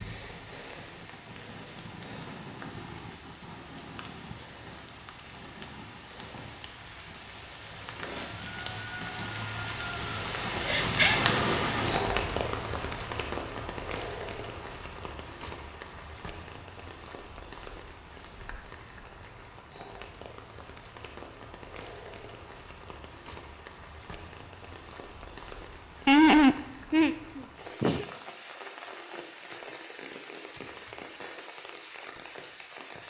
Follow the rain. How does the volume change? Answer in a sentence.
The volume of the rain goes up, then down.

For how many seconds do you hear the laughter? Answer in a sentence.
The laughter can be heard for 3 seconds in total.